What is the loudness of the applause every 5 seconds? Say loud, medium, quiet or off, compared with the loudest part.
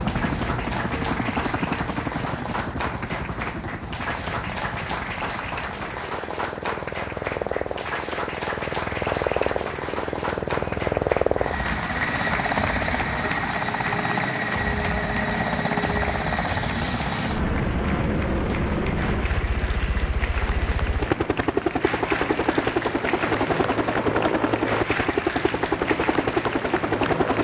loud, loud, loud, medium, loud, loud.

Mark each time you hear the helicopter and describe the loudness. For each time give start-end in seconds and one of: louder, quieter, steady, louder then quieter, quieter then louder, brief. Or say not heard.
0.0-27.4 louder.